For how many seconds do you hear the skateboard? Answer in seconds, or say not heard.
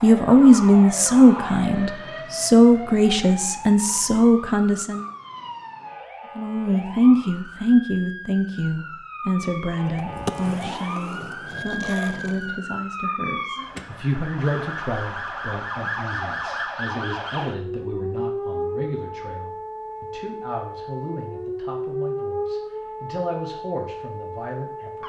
3 s.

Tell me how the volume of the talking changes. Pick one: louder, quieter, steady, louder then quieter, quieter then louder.
quieter.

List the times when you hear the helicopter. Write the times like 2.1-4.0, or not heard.
not heard.